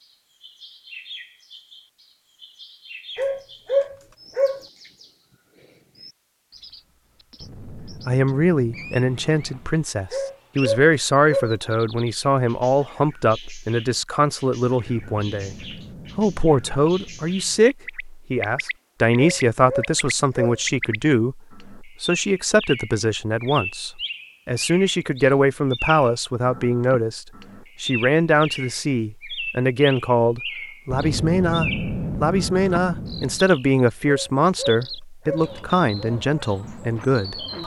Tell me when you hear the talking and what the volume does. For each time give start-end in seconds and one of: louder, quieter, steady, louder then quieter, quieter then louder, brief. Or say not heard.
7.8-37.6 steady.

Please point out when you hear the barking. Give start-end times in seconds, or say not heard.
3.1-4.6, 10.1-11.6, 19.1-20.6, 34.0-35.5.